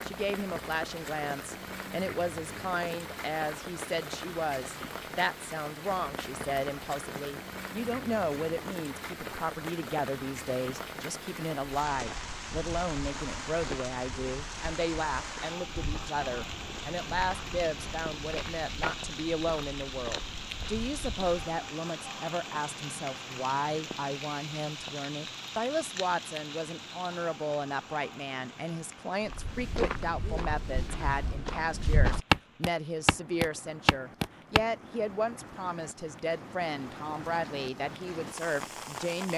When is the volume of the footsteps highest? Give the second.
32 s.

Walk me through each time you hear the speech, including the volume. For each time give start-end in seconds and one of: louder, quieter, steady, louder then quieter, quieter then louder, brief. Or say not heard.
0.1-39.3 steady.